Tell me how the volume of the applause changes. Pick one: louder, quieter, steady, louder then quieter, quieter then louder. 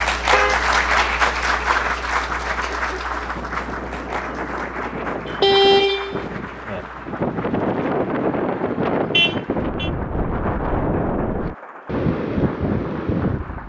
quieter.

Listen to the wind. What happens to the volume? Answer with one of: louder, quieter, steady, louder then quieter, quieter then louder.
louder.